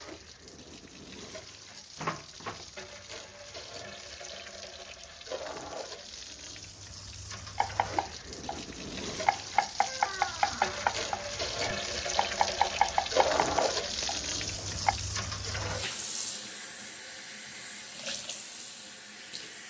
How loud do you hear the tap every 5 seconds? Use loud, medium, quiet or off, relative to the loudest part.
quiet, medium, loud, medium.